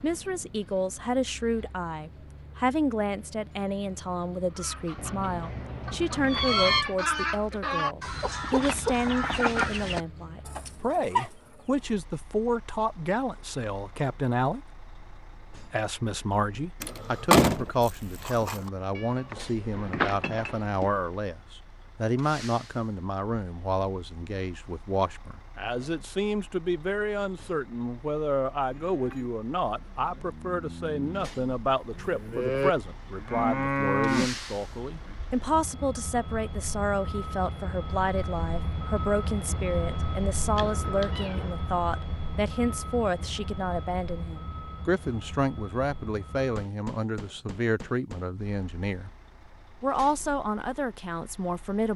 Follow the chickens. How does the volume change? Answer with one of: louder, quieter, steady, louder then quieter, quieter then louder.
louder then quieter.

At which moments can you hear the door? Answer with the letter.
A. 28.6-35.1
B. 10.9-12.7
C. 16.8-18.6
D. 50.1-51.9
C.